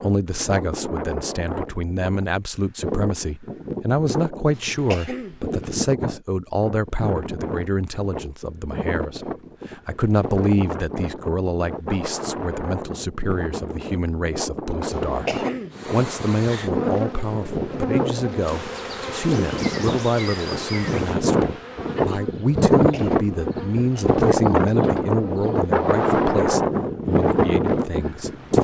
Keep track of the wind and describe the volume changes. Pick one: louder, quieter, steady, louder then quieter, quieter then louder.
louder.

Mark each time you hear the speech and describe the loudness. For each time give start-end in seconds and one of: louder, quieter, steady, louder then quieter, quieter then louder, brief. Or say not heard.
0.0-28.5 steady.